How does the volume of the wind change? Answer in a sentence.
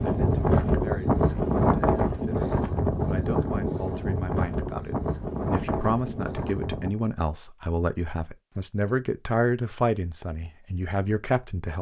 The loudness of the wind goes down.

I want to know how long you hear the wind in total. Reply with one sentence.
The wind can be heard for 7 seconds in total.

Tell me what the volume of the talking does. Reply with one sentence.
The volume of the talking goes up.